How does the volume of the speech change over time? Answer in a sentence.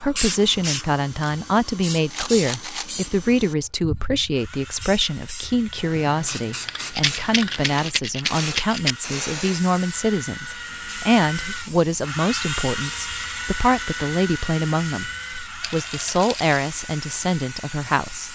The volume of the speech stays about the same.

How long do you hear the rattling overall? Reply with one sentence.
The rattling can be heard for 4 seconds in total.